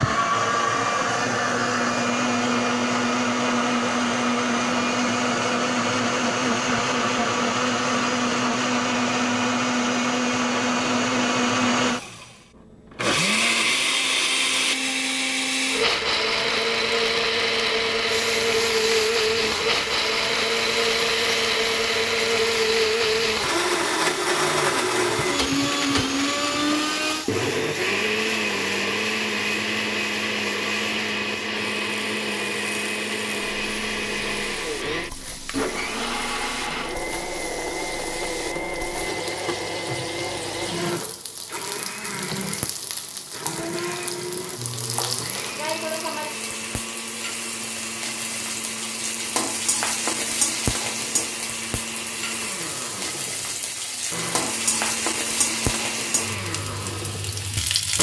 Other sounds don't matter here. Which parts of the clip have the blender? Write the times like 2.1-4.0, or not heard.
0.0-57.9.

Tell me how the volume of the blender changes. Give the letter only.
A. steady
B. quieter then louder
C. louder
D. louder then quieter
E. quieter
E.